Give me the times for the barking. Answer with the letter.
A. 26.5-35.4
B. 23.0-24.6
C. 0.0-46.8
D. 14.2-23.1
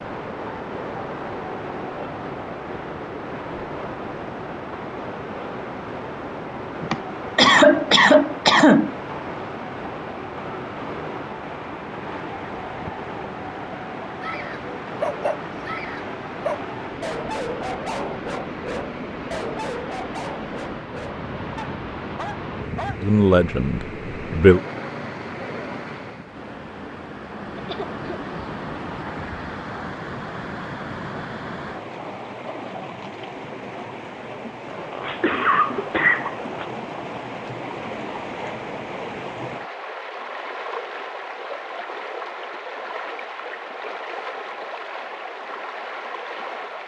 D.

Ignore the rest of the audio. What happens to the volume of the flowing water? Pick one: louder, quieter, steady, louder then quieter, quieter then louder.
steady.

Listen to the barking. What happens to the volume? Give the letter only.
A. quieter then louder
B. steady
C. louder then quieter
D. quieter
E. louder
D.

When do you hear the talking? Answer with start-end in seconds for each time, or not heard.
23.0-24.6.